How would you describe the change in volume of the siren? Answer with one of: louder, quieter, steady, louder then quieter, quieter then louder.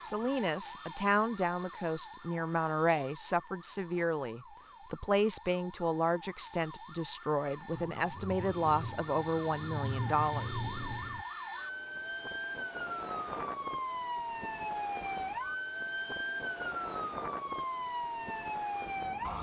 louder.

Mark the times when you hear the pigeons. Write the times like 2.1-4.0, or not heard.
not heard.